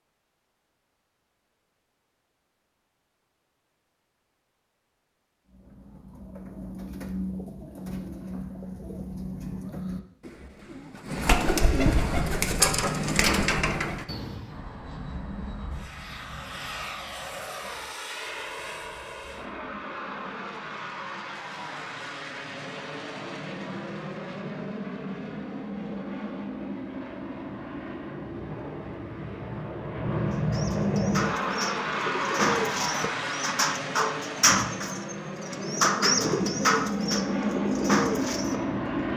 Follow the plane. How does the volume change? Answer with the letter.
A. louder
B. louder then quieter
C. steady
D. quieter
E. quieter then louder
A.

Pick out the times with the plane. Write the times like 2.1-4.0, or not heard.
14.4-39.1.